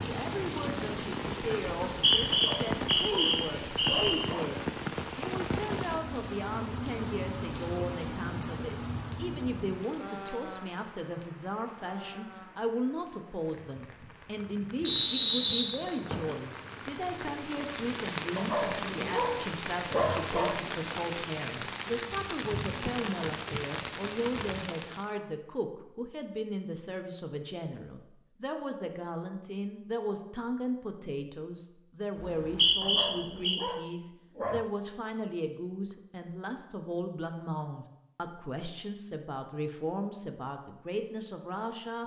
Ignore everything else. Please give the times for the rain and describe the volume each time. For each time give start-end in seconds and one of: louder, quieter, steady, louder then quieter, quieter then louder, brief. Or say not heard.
0.0-25.1 quieter then louder.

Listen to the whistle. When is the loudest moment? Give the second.
15 s.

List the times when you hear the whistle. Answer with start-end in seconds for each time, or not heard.
1.8-4.2, 14.8-16.4, 32.2-33.6.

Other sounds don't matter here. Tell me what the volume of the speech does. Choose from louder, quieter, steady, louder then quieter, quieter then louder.
steady.